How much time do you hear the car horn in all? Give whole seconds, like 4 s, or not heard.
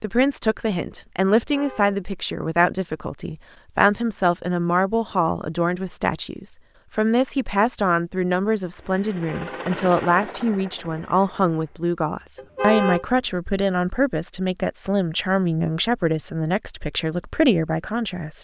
2 s.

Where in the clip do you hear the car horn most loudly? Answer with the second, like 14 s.
13 s.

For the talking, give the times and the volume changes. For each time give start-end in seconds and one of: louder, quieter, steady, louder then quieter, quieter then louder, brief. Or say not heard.
0.0-18.3 steady.